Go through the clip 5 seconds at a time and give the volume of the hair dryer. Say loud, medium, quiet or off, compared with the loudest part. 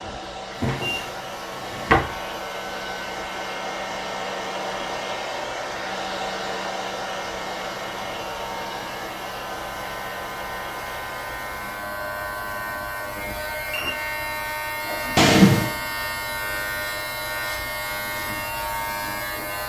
loud, loud, medium, medium.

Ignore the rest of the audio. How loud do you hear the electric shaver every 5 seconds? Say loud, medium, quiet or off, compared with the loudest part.
medium, medium, loud, loud.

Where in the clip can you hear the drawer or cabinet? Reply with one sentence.
You can hear the drawer or cabinet from 0.6 to 2.1 s and from 15.2 to 15.8 s.